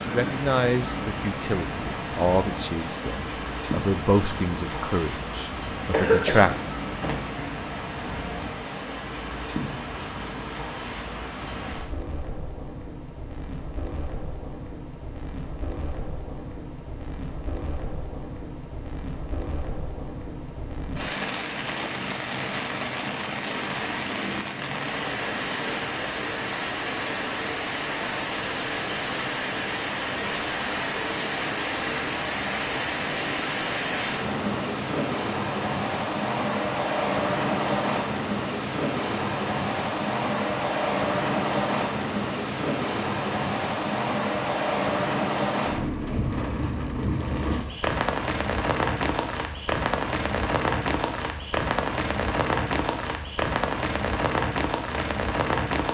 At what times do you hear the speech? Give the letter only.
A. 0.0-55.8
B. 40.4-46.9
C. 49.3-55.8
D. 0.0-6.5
D.